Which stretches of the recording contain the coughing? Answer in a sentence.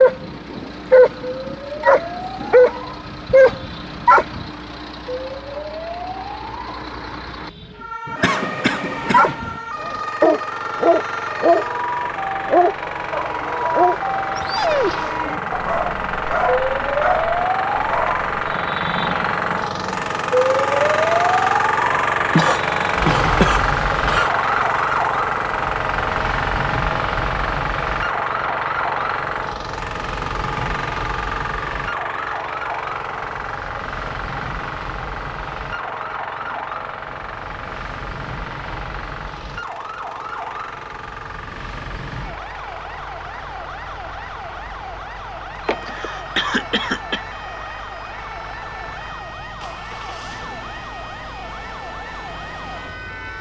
You can hear the coughing from 8.2 to 9.3 s, from 22.4 to 24.4 s and from 45.6 to 47.2 s.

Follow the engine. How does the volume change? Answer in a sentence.
The volume of the engine goes up, then down.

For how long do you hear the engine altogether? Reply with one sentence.
You can hear the engine for 53 seconds altogether.